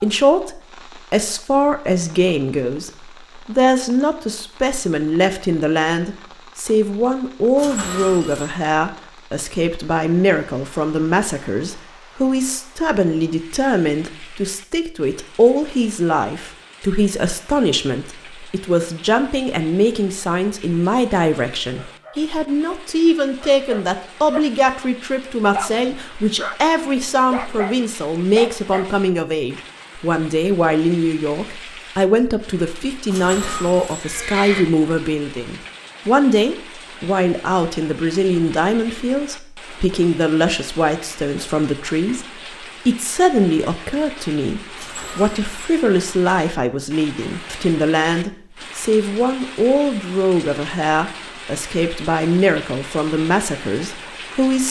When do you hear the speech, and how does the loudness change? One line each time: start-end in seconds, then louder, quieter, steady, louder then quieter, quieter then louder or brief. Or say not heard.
0.0-42.2 steady
42.9-54.6 steady.